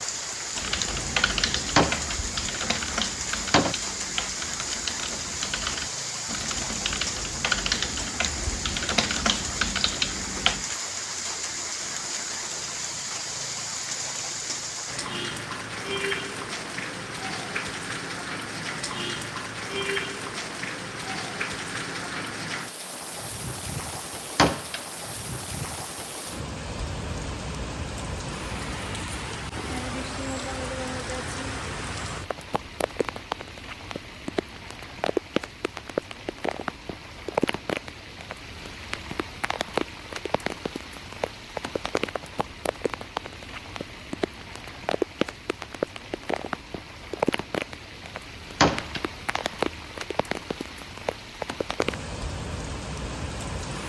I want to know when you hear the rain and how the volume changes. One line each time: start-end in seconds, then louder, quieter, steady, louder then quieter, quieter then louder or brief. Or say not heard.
0.0-53.8 steady.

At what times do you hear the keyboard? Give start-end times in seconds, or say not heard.
0.6-10.8.